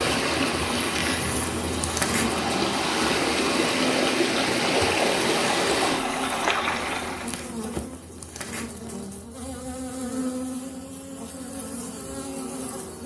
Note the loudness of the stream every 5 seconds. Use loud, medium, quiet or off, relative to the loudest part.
loud, loud, off.